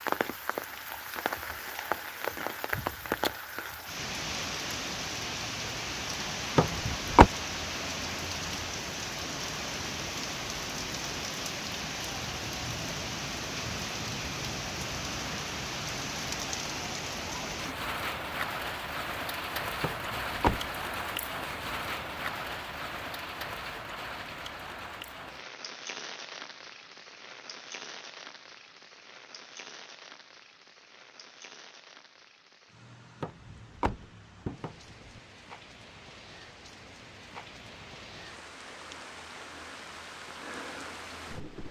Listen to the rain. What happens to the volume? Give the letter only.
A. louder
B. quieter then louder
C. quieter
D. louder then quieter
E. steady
C.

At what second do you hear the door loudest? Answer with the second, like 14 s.
7 s.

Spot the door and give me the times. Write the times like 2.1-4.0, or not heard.
6.5-7.3, 19.8-20.7, 33.2-35.2.